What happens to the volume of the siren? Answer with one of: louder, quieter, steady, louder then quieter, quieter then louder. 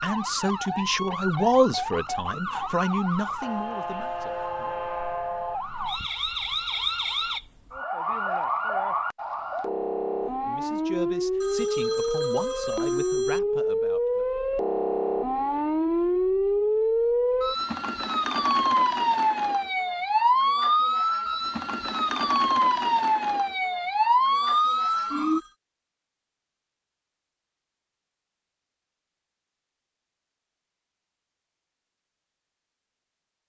louder.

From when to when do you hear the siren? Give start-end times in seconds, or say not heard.
0.0-25.4.